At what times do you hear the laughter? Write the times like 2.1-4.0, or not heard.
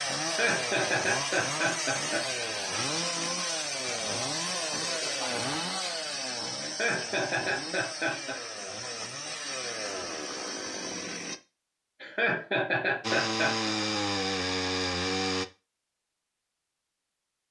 0.2-2.2, 6.6-8.4, 12.0-13.8.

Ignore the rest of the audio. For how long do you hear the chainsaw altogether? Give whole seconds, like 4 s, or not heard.
14 s.